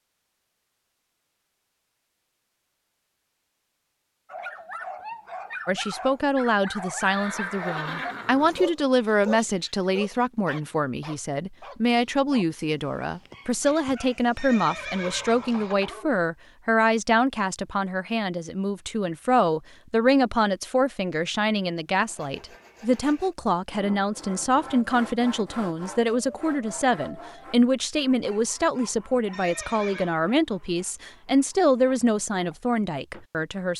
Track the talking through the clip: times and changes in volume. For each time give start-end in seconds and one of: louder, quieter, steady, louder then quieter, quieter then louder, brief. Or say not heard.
5.7-33.7 steady.